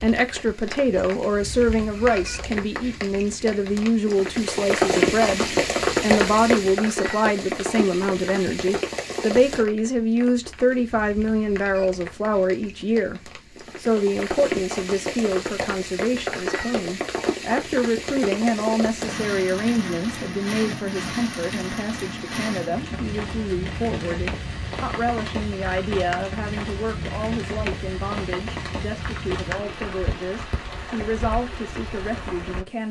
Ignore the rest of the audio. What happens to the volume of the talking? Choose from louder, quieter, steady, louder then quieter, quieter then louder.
quieter.